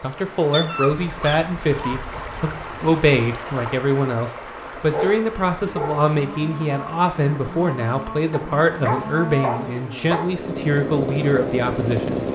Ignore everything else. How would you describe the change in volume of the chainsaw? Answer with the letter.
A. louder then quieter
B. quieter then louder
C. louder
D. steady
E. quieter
C.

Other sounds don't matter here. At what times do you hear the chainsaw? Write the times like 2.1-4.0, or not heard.
6.1-12.2.